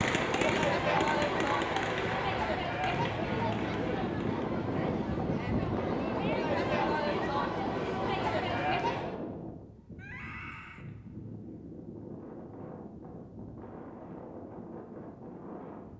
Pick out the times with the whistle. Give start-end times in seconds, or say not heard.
not heard.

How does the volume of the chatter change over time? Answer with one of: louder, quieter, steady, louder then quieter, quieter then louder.
quieter then louder.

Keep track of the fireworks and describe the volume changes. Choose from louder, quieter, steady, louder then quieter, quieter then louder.
quieter.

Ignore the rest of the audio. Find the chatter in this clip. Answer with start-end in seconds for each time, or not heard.
0.0-9.2.